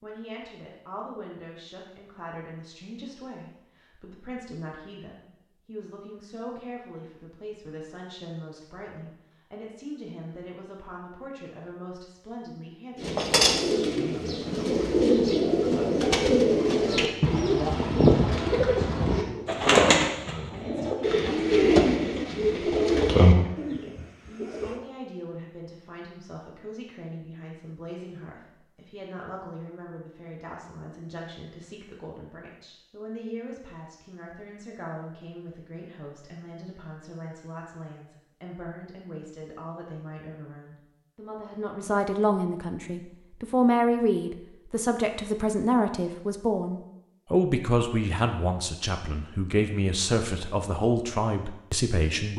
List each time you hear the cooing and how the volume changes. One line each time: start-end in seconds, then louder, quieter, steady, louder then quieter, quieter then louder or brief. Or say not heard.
12.9-24.8 steady.